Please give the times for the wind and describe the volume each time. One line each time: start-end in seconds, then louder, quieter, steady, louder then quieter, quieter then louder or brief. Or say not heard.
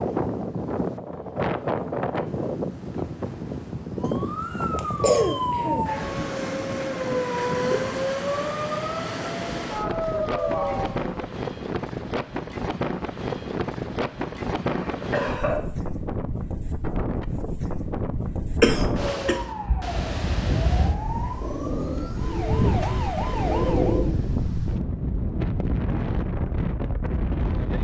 0.0-27.7 steady.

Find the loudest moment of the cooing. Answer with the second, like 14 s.
24 s.